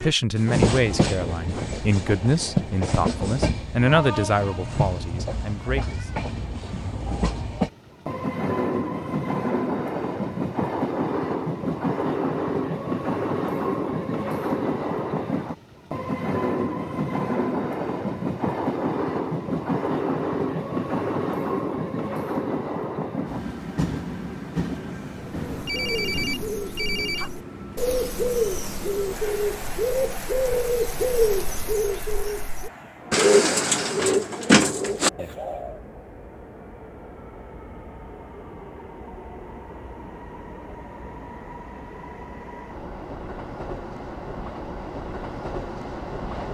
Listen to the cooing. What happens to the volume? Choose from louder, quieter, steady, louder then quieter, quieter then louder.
louder.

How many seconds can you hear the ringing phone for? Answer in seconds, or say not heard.
2 s.